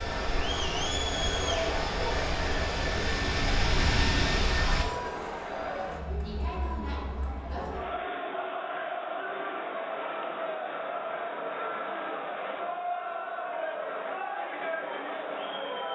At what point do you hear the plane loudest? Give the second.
4 s.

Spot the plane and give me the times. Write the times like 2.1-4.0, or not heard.
0.0-4.8.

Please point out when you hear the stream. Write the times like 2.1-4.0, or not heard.
not heard.